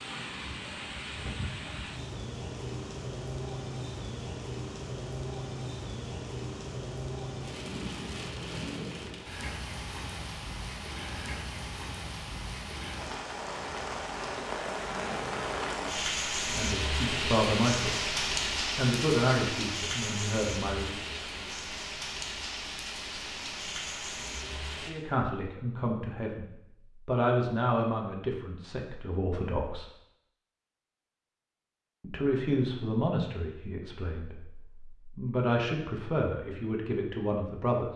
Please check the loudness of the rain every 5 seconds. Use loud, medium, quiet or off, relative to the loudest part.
medium, medium, medium, loud, medium, off, off, off.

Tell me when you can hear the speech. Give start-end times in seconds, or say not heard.
16.5-18.0, 18.8-20.9, 24.9-29.9, 32.0-37.9.